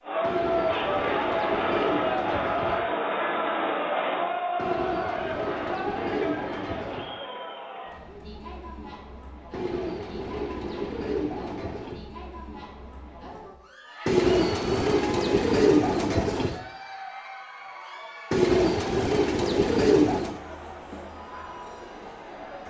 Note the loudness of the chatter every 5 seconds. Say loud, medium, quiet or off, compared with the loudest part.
loud, medium, quiet, quiet, quiet.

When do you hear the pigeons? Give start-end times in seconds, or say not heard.
0.2-2.8, 4.5-7.1, 9.5-12.1, 14.1-16.6, 18.3-20.4.